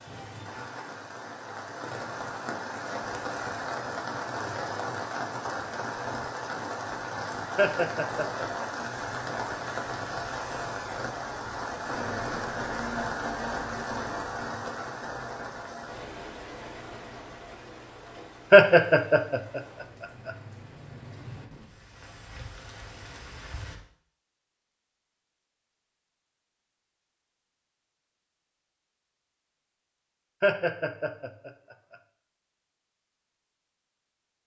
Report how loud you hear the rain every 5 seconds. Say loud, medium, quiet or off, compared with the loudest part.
loud, loud, loud, medium, quiet, off, off.